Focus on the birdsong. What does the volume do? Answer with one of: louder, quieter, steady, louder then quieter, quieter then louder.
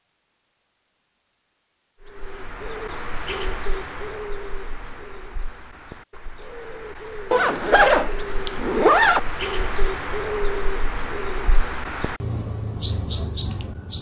quieter then louder.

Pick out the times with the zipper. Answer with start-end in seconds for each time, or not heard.
7.3-9.2.